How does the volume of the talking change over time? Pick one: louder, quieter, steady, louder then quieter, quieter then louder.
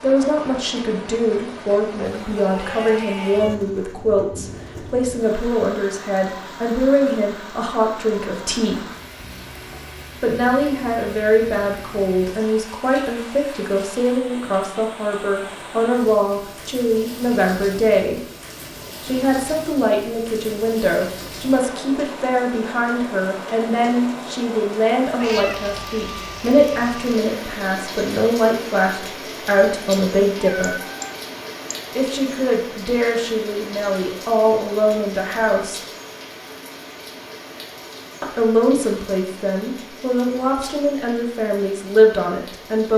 steady.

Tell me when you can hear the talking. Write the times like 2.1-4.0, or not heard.
0.0-8.8, 10.2-18.2, 19.0-30.8, 31.9-35.8, 38.2-42.9.